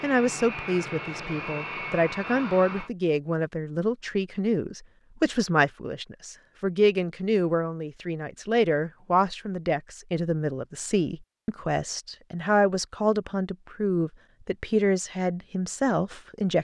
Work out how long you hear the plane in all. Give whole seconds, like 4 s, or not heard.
3 s.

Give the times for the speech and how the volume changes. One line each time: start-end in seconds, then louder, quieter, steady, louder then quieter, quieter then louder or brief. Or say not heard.
0.0-16.5 steady.